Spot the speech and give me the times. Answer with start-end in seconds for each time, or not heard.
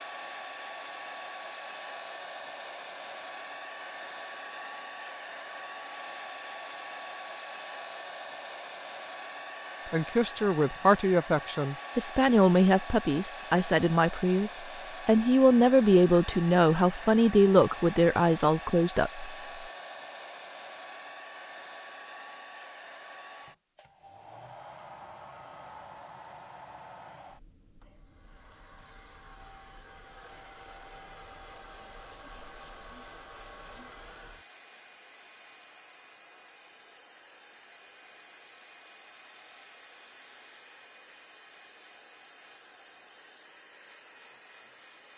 9.9-19.4.